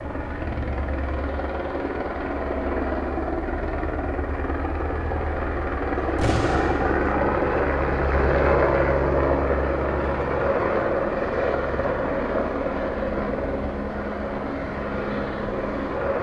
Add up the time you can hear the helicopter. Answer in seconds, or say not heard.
16 s.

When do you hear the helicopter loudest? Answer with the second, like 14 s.
9 s.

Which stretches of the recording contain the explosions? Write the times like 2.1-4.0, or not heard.
6.2-7.1.